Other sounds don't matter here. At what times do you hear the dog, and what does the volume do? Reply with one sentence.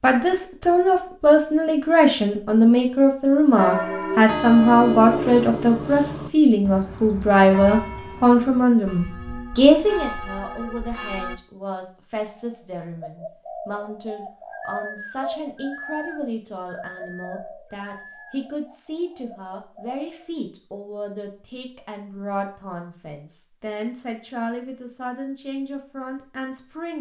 The dog can't be heard in this clip.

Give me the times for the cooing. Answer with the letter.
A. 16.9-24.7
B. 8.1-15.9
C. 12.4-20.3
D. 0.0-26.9
C.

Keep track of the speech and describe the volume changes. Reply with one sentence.
The volume of the speech goes down.